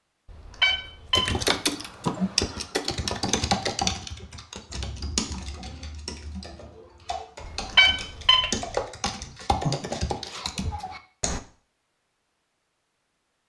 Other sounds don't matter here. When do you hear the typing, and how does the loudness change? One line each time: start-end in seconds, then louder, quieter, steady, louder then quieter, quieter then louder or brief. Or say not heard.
1.1-11.4 quieter then louder.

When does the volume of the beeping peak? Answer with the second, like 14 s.
8 s.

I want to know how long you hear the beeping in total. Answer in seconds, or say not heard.
2 s.